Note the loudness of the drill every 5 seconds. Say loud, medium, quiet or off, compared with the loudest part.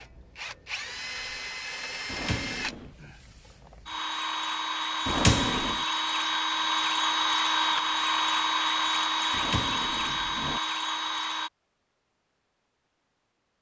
medium, loud, loud.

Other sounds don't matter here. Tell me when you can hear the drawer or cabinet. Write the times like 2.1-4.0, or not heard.
2.0-3.0, 5.0-5.8, 9.3-10.6.